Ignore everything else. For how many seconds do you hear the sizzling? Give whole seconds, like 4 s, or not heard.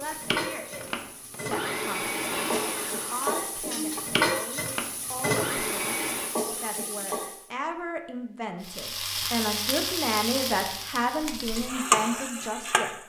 12 s.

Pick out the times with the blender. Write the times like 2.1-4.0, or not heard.
0.0-6.3.